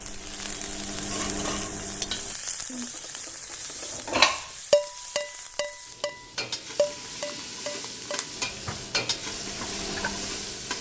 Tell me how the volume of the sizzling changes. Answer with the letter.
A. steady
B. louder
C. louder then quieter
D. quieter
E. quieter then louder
E.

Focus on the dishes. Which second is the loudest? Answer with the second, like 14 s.
4 s.